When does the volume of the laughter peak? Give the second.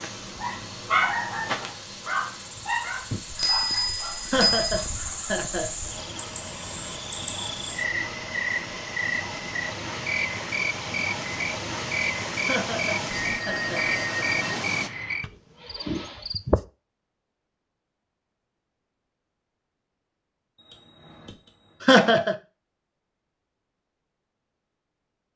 22 s.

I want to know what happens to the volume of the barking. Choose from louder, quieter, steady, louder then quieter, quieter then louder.
quieter.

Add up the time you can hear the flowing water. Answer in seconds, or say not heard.
15 s.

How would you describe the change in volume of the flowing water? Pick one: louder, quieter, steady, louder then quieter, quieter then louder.
louder.